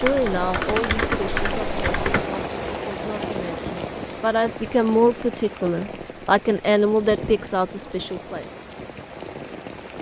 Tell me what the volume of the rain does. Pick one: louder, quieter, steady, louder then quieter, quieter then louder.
quieter.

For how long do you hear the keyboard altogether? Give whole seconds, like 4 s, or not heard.
2 s.